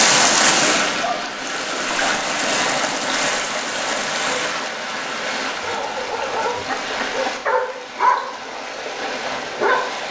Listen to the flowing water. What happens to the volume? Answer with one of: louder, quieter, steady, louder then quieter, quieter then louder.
quieter.